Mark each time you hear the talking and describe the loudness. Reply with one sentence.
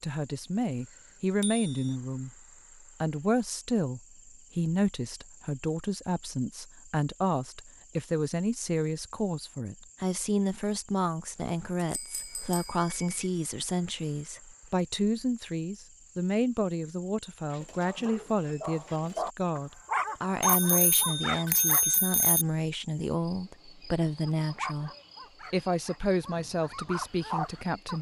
The talking can be heard briefly from 0.0 to 2.3 s; from 3.0 to 24.9 s, at a steady volume; and briefly from 25.5 to 27.9 s.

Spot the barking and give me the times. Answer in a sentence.
The barking can be heard from 17.5 to 21.9 s and from 24.2 to 27.9 s.